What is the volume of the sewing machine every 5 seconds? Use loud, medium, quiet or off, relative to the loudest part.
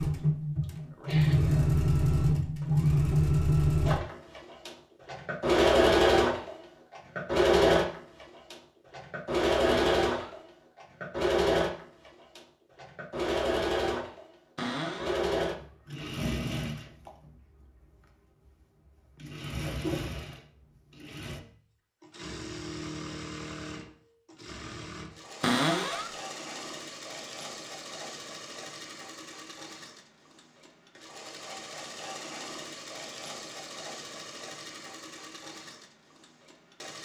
loud, loud, medium, medium, quiet, quiet, quiet, quiet.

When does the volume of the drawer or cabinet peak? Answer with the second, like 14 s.
26 s.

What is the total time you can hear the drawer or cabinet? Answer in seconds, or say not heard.
2 s.